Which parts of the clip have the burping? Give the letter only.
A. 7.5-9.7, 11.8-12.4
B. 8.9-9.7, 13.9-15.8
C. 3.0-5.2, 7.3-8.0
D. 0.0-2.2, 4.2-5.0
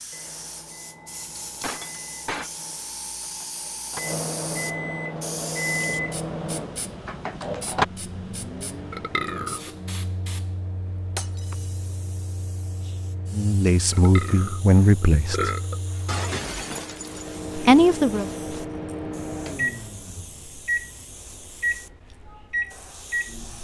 B.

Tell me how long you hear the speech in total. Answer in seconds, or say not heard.
3 s.